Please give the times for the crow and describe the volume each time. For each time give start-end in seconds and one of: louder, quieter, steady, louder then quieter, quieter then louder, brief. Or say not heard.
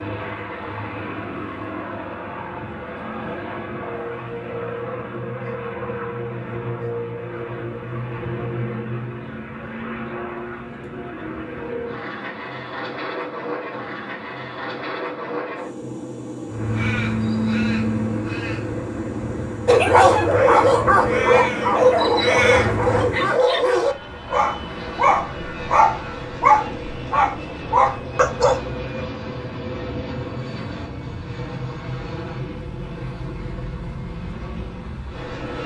16.4-23.2 quieter then louder.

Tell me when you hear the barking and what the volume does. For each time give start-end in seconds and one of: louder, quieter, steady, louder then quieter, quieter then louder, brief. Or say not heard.
19.6-29.0 steady.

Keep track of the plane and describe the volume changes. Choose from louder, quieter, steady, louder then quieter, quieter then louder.
steady.